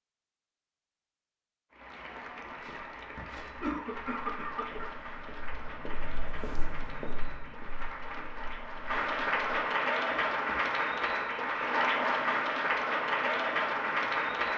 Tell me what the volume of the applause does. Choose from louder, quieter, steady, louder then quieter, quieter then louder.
louder.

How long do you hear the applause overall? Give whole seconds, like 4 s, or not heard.
13 s.